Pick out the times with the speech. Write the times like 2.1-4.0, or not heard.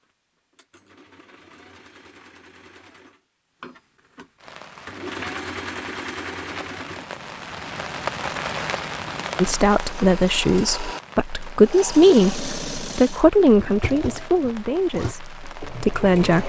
9.3-16.4.